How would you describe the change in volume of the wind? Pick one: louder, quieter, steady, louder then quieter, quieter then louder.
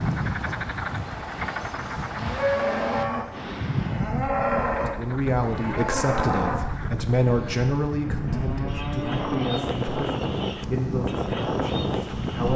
louder.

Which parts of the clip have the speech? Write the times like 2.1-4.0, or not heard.
4.7-12.5.